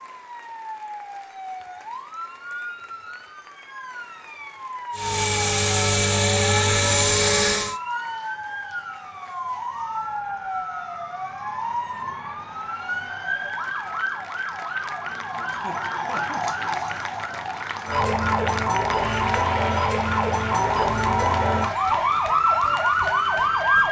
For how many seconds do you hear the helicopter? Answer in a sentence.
You can hear the helicopter for 3 seconds altogether.